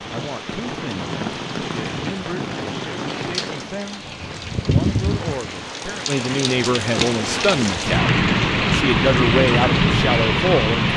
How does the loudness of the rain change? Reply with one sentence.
The volume of the rain goes up.